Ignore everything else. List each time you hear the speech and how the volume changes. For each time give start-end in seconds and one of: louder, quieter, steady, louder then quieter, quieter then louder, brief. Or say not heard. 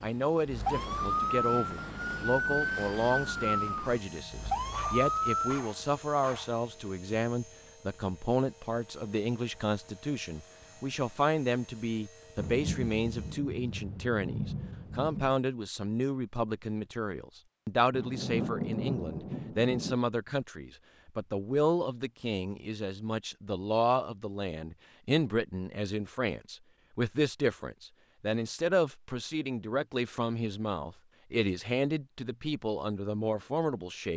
0.0-34.1 steady.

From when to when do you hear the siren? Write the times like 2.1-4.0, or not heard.
0.0-5.6.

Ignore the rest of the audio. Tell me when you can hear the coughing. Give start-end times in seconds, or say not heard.
not heard.